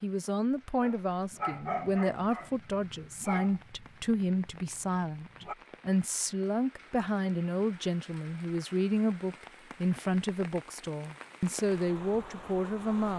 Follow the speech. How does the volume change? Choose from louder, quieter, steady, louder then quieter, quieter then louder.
steady.